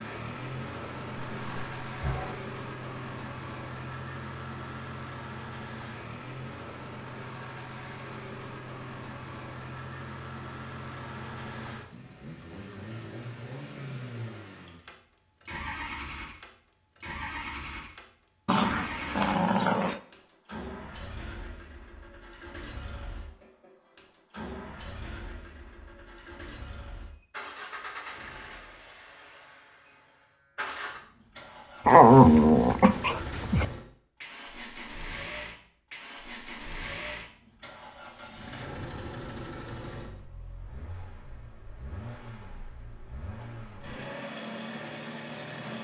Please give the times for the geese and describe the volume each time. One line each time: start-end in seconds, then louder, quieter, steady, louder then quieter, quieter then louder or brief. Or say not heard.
not heard.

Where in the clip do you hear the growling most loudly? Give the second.
32 s.